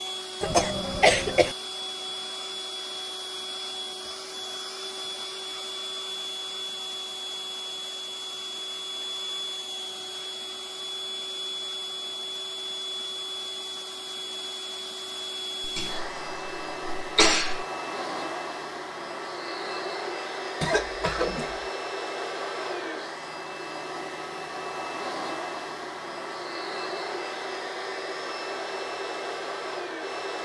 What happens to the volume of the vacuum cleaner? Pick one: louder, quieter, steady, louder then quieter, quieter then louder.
steady.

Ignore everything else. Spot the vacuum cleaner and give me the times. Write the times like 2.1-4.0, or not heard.
0.0-30.4.